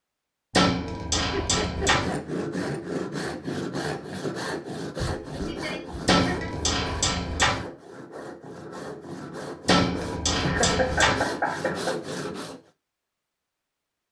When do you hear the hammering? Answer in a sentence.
The hammering can be heard from 0.5 to 2.1 s, from 6.0 to 7.7 s and from 9.7 to 11.2 s.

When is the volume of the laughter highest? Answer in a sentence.
The loudest moment of the laughter is at 11 seconds.